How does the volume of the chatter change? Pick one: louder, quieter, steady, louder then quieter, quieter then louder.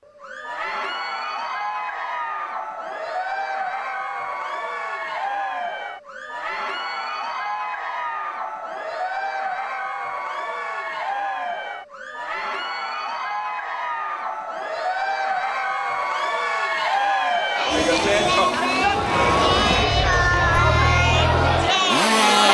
louder.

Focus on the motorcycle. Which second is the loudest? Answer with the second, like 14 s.
22 s.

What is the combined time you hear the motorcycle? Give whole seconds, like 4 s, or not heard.
5 s.